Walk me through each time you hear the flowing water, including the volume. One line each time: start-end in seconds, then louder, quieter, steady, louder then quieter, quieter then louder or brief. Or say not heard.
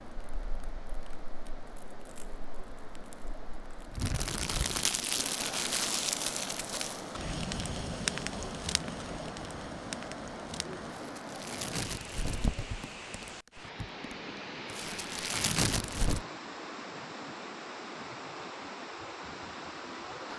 0.0-20.3 louder.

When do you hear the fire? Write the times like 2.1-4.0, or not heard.
0.0-16.2.